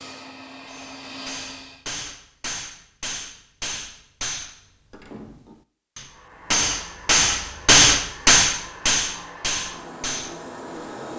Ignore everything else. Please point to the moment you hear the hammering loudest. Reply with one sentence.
The loudest moment of the hammering is at 8 seconds.